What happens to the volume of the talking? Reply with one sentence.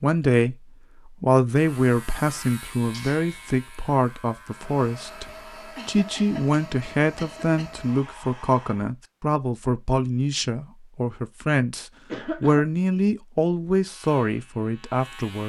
The loudness of the talking stays about the same.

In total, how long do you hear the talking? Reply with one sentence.
The talking can be heard for 15 seconds in total.